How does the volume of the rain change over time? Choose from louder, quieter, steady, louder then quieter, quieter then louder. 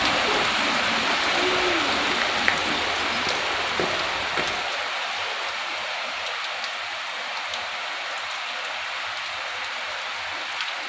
quieter.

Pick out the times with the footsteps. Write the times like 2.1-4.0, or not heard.
0.0-4.7.